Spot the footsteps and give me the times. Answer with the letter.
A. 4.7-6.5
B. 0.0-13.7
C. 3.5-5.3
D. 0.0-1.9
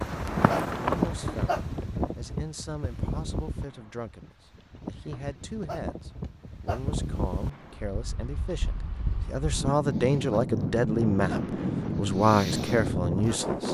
D.